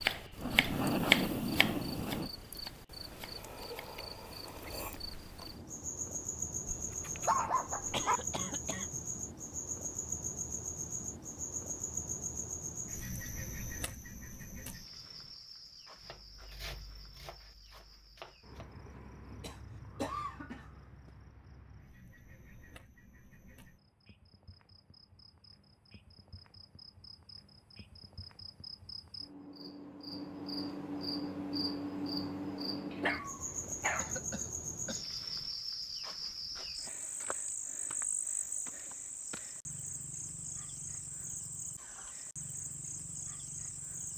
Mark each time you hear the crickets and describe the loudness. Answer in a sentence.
You can hear the crickets from 0.0 to 44.1 s, getting quieter then louder.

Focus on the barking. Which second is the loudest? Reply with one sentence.
The volume of the barking peaks at 7 seconds.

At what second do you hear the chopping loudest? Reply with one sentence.
The volume of the chopping peaks at 1 second.